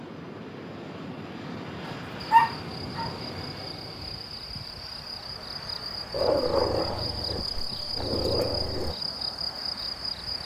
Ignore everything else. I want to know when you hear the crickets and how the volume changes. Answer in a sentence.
The crickets can be heard from 2.1 to 10.4 s, getting louder.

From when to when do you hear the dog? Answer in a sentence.
You can hear the dog from 1.9 to 3.1 s and from 6.1 to 8.9 s.